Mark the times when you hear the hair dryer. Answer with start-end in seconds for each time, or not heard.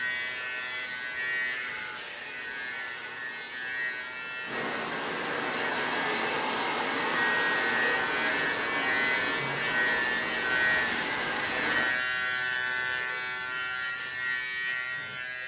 0.0-11.9.